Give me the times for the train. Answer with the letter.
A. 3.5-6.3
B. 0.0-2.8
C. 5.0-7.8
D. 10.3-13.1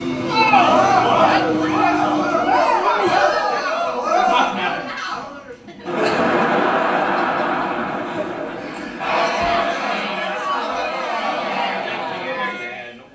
B.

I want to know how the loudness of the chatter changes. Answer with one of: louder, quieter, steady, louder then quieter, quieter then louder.
quieter.